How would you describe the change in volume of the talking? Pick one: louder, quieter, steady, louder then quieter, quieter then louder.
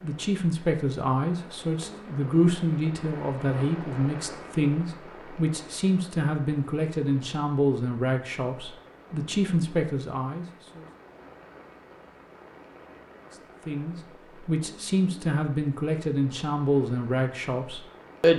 steady.